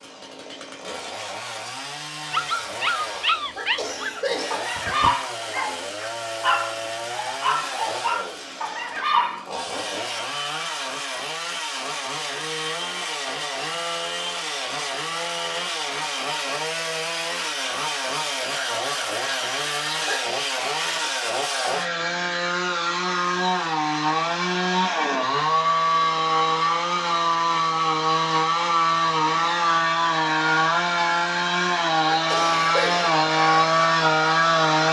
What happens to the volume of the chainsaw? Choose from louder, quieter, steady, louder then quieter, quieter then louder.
louder.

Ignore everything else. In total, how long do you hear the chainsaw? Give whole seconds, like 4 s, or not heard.
35 s.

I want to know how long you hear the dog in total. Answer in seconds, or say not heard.
7 s.